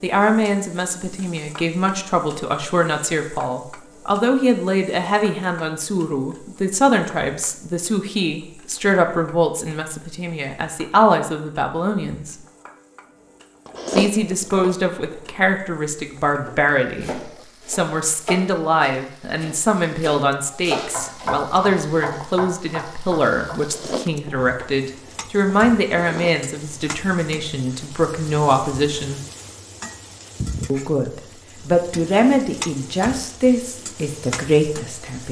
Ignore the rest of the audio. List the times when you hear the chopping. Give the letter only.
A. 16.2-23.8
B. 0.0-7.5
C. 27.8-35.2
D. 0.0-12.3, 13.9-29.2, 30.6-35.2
A.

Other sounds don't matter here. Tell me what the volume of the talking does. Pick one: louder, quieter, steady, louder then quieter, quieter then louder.
steady.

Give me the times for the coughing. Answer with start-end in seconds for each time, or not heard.
not heard.